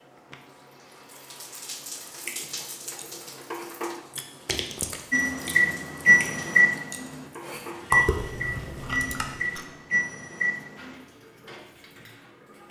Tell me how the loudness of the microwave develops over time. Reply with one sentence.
The volume of the microwave goes down.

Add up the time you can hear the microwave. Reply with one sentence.
You can hear the microwave for 6 seconds altogether.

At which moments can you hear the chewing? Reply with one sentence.
You can hear the chewing from 2.0 to 9.7 s.